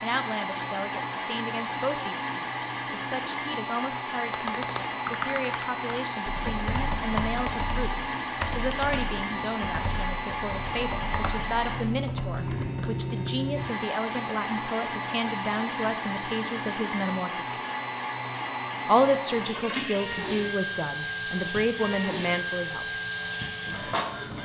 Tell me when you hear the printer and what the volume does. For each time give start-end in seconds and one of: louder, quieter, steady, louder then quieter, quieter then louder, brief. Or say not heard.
0.0-24.4 steady.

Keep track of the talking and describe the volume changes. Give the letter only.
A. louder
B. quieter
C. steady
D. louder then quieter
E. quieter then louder
A.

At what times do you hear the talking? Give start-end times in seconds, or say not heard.
0.0-17.6, 18.9-23.0.